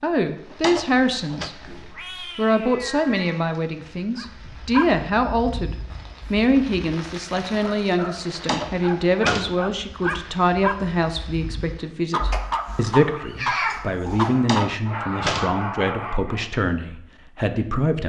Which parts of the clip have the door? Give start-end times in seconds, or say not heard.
0.5-1.5, 8.3-9.6, 14.3-15.6.